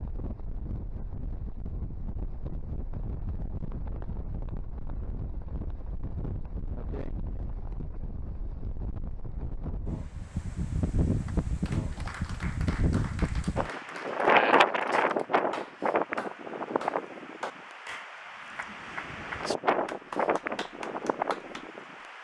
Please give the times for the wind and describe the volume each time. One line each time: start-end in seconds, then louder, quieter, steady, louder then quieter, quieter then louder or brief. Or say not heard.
0.0-22.2 louder then quieter.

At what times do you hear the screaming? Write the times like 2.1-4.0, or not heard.
not heard.